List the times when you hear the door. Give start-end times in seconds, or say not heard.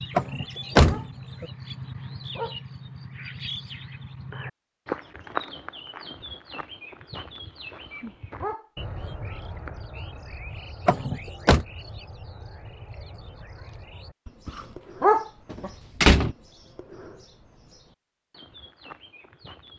0.1-1.4, 10.8-11.7, 15.5-16.4.